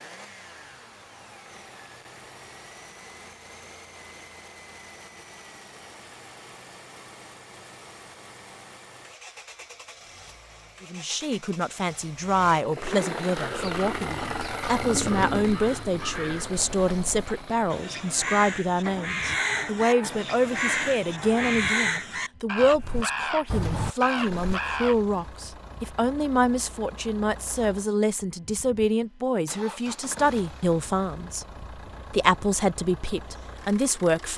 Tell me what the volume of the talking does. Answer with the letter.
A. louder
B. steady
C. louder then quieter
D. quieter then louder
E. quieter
B.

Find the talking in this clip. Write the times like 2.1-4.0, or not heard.
10.8-34.3.